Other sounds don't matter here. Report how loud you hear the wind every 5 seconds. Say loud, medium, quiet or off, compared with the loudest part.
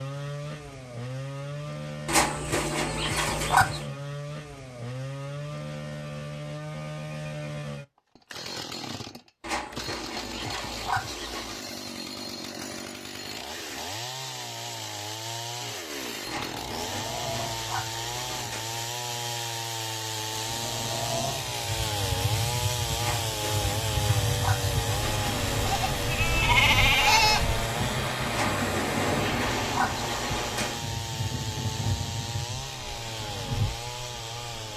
off, off, off, medium, loud, loud, medium.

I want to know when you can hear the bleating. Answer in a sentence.
You can hear the bleating from 25.6 to 27.6 s.